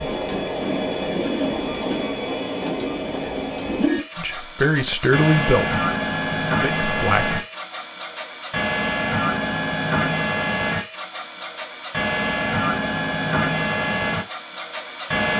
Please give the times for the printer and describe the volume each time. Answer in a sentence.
You can hear the printer from 0.0 to 15.3 s, at a steady volume.